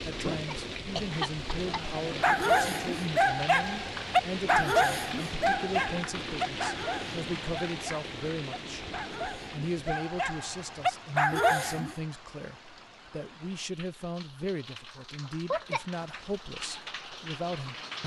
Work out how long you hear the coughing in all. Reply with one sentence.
The coughing can be heard for 2 seconds in total.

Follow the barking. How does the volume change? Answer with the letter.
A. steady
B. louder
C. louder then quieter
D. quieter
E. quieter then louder
E.